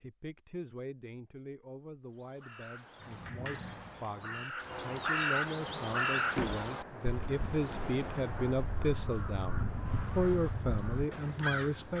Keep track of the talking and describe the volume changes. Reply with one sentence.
The volume of the talking goes up.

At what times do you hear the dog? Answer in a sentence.
The dog can't be heard in this clip.